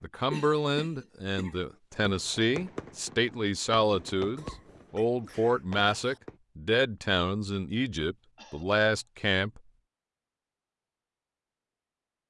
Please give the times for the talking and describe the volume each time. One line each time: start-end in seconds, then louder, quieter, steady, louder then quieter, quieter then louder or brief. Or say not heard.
0.0-9.6 steady.